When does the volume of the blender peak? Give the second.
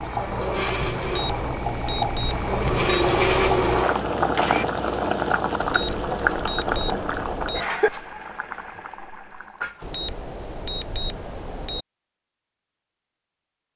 3 s.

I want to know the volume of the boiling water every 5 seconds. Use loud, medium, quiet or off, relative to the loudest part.
loud, loud, off.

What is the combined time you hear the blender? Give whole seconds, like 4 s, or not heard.
5 s.